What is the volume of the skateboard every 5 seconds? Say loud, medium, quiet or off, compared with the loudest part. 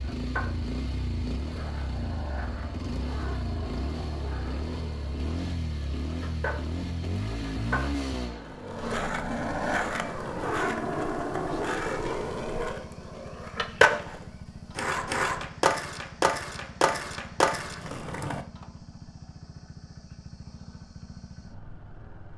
quiet, medium, loud, loud, off.